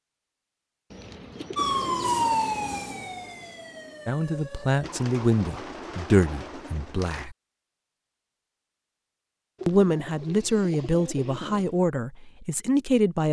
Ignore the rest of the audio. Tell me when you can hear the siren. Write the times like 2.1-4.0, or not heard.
1.6-4.9.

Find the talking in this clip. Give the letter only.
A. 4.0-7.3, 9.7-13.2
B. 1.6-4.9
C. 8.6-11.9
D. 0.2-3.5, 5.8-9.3
A.